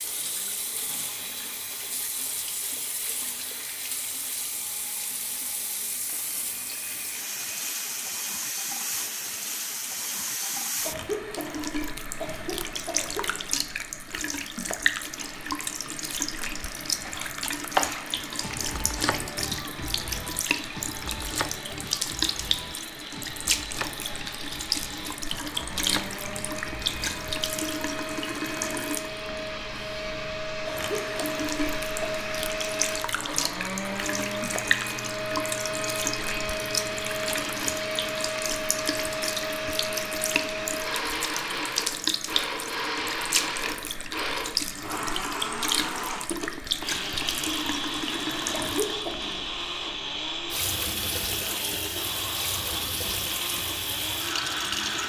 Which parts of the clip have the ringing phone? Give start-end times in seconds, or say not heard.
not heard.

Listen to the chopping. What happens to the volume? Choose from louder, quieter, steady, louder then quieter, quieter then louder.
quieter.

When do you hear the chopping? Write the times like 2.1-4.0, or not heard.
17.0-27.6.